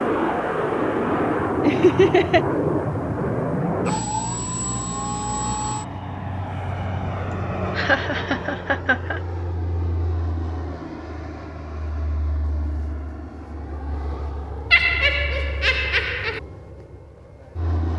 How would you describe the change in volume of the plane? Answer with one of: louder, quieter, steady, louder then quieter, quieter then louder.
quieter.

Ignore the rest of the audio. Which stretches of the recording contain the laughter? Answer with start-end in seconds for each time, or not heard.
1.6-2.4, 7.8-9.2, 14.7-16.4.